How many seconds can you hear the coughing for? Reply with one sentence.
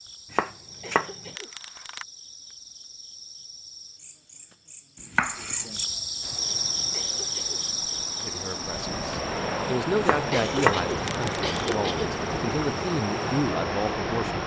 The coughing can be heard for 3 seconds in total.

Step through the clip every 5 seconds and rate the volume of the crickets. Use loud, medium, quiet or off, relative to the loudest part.
quiet, loud, quiet.